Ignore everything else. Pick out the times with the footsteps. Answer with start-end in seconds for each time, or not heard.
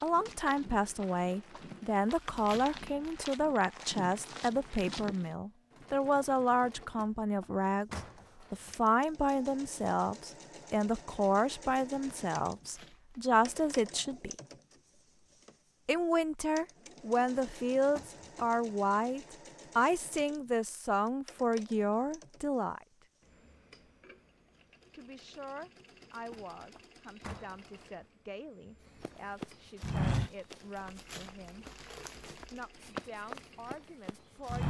0.0-5.3, 29.0-34.6.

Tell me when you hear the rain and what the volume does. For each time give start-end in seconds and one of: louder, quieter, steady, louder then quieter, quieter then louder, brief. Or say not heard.
not heard.